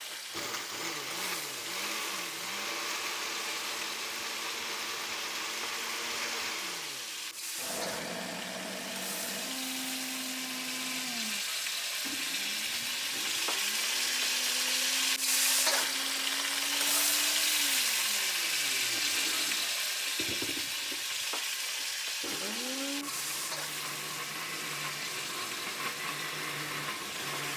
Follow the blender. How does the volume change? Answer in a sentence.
The volume of the blender goes down, then up.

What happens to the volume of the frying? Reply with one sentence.
The loudness of the frying goes up, then down.